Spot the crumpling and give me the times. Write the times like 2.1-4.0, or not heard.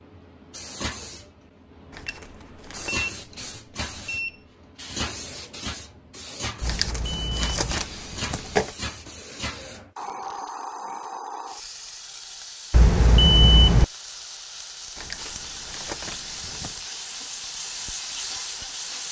1.9-3.1, 6.7-8.8, 14.9-16.8.